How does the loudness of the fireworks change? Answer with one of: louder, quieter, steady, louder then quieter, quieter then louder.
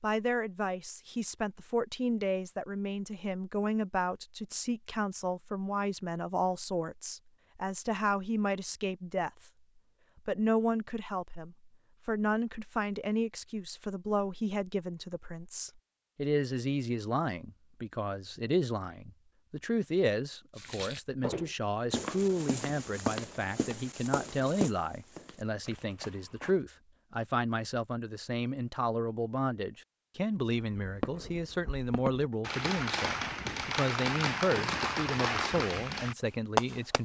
louder.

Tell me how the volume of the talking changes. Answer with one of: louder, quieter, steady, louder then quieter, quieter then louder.
steady.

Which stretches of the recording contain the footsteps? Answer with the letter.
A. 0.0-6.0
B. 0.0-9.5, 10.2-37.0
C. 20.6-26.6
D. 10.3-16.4
C.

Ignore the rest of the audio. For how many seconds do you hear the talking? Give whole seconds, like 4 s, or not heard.
36 s.